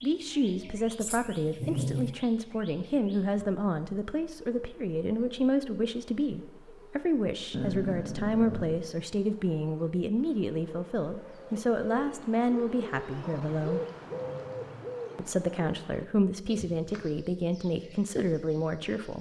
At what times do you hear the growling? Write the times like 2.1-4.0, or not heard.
1.0-2.1, 7.5-8.8, 13.2-14.9.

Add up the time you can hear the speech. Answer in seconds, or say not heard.
18 s.